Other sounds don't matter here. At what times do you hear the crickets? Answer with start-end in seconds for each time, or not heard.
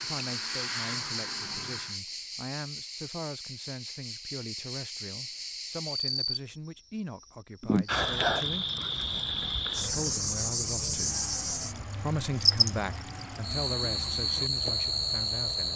0.0-15.7.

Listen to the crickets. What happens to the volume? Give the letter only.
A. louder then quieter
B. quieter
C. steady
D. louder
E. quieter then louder
D.